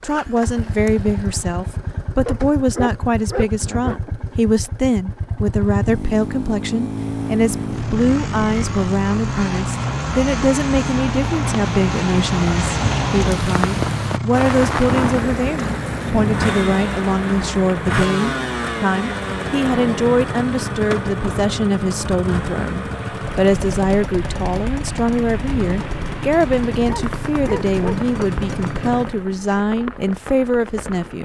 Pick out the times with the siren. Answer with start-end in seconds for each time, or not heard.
not heard.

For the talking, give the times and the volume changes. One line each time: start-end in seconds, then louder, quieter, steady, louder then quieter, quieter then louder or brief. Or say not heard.
0.0-31.1 steady.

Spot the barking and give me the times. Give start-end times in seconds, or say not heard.
2.2-4.0, 26.9-28.0.